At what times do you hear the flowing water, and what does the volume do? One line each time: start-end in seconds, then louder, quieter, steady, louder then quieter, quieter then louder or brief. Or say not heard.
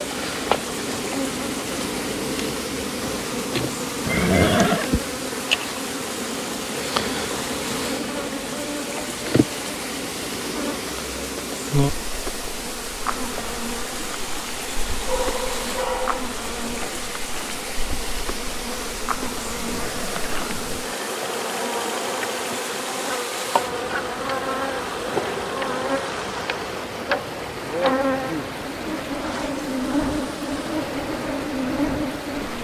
0.0-32.5 steady.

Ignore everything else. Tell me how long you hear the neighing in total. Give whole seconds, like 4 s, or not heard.
2 s.